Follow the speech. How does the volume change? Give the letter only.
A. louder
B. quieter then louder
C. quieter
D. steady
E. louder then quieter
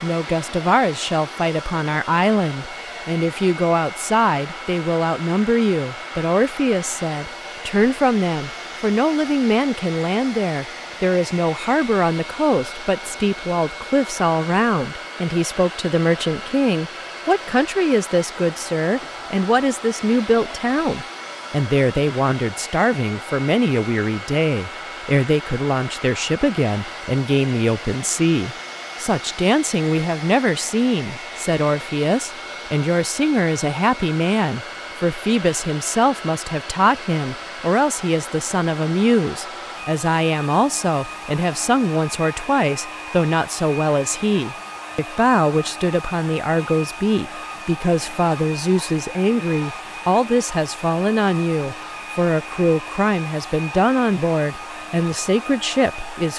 D.